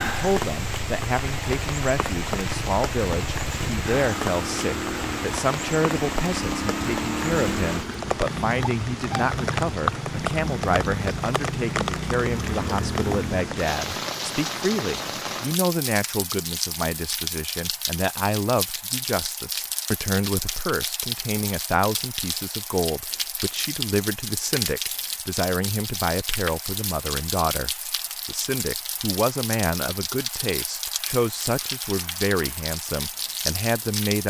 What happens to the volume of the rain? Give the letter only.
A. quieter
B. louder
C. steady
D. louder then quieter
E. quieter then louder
C.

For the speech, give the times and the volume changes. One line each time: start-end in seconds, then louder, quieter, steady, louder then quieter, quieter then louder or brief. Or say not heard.
0.0-34.2 steady.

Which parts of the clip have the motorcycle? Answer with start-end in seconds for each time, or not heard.
0.0-13.7.